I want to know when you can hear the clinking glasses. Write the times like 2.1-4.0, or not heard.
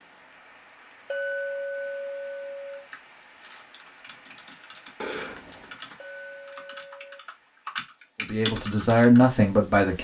1.1-2.9, 6.0-7.2.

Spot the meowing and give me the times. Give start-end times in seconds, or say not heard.
5.0-5.8.